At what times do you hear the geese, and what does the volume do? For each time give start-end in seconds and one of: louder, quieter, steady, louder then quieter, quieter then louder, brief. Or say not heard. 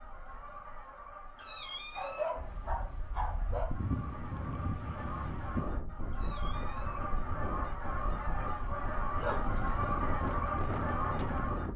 0.0-11.7 louder.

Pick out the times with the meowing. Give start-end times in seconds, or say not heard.
1.4-2.4, 6.1-7.0.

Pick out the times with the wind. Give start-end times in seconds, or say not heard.
2.4-11.7.